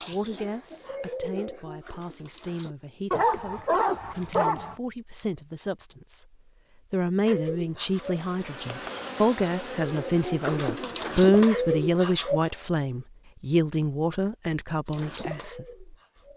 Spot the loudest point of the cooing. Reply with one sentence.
The volume of the cooing peaks at 12 seconds.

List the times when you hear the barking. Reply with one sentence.
The barking can be heard from 3.1 to 4.8 s.